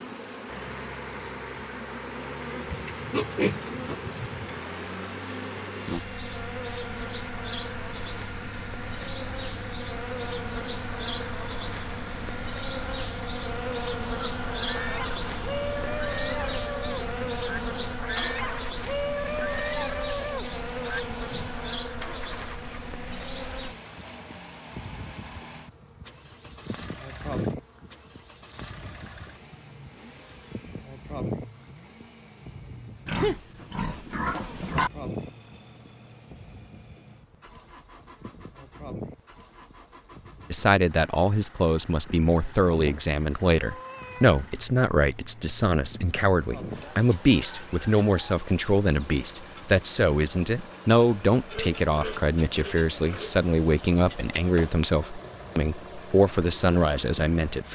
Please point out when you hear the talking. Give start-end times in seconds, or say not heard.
40.5-57.7.